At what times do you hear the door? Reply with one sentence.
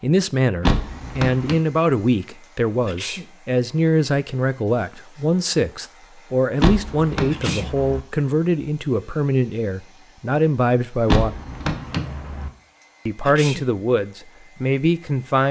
The door can be heard from 0.6 to 1.6 s, from 6.6 to 8.0 s and from 11.1 to 12.5 s.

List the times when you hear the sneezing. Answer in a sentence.
You can hear the sneezing from 2.9 to 3.3 s, from 7.3 to 7.7 s and from 13.2 to 13.7 s.